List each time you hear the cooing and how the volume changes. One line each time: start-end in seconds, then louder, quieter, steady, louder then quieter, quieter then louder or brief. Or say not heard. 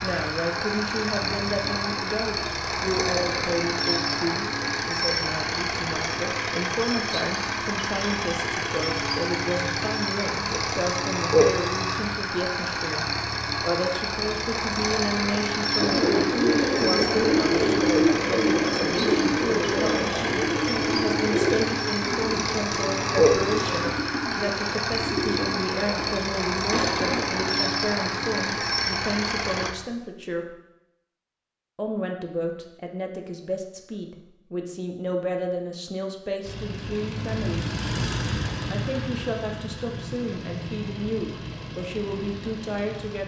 15.8-27.5 quieter.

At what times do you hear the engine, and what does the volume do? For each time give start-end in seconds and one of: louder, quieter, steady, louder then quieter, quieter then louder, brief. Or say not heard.
0.0-29.8 steady
36.4-43.2 quieter.